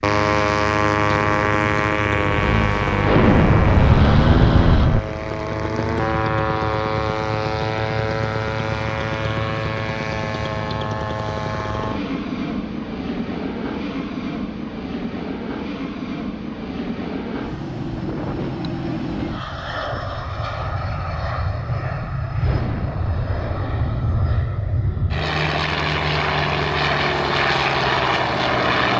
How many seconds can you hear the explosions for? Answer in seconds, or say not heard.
4 s.